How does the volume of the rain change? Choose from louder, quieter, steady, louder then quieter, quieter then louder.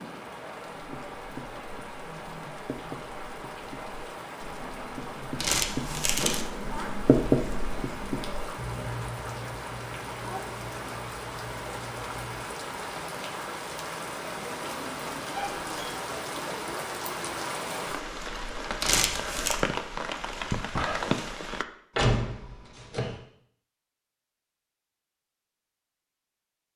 louder.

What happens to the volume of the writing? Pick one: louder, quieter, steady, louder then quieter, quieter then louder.
louder then quieter.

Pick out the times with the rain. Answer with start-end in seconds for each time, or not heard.
0.0-21.6.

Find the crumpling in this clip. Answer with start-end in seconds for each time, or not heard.
5.3-6.5, 18.8-19.6.